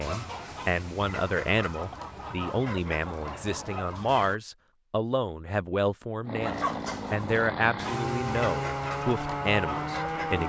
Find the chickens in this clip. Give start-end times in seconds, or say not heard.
0.0-4.4, 6.4-10.4.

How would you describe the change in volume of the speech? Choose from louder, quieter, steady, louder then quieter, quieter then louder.
steady.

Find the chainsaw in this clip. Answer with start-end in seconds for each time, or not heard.
6.2-10.4.